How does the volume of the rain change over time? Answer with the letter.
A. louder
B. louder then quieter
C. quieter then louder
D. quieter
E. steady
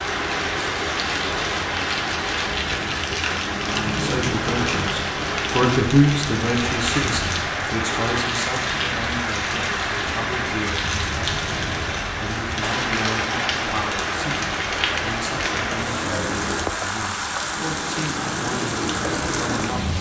E.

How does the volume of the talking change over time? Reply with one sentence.
The volume of the talking goes down.